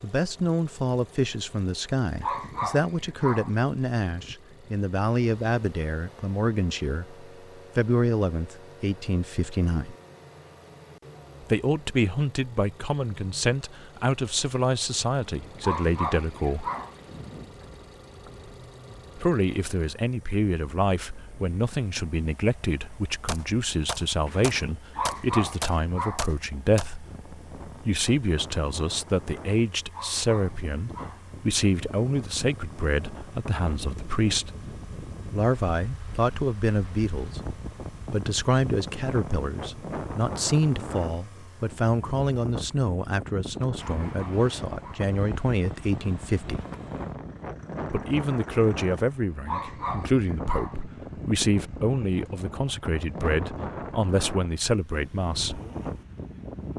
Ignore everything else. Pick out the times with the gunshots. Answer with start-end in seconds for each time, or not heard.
23.2-26.9.